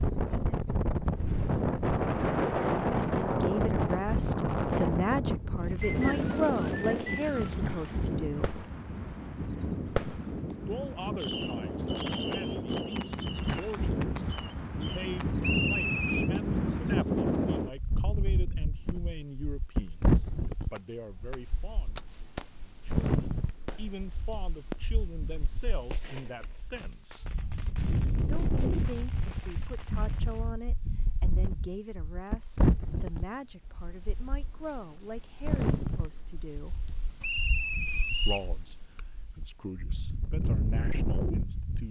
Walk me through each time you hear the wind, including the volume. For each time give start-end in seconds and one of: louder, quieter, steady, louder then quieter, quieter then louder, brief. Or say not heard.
0.0-41.8 quieter.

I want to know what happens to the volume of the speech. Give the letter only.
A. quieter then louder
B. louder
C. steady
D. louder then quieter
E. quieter
E.